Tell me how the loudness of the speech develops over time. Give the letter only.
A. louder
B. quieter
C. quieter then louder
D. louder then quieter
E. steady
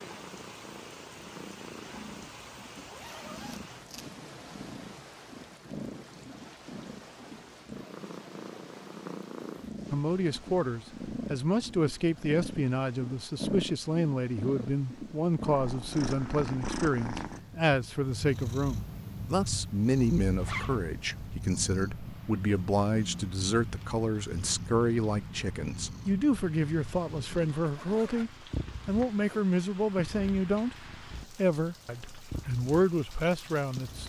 E.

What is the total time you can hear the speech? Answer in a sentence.
The speech can be heard for 24 seconds in total.